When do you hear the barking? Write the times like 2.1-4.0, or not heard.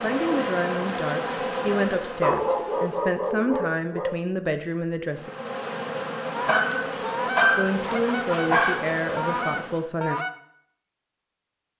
2.2-4.1, 6.5-8.9.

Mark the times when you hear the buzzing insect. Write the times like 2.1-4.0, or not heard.
0.0-3.2, 5.0-9.9.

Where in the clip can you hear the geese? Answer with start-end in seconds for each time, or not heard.
6.3-10.3.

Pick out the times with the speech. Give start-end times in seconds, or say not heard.
0.0-5.3, 7.5-10.2.